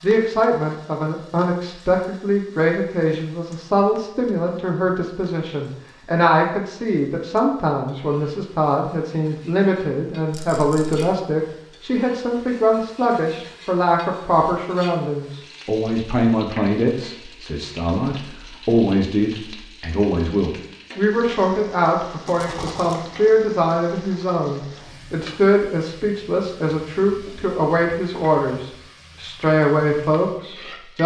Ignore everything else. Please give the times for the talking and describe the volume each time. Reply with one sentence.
The talking can be heard from 0.0 to 31.0 s, at a steady volume.